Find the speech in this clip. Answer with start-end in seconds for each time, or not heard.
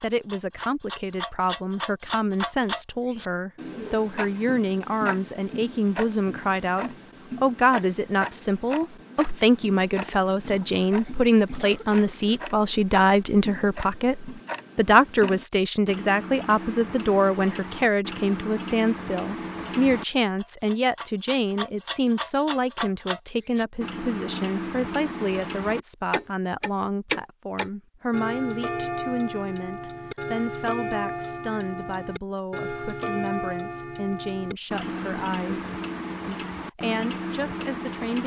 0.0-38.2.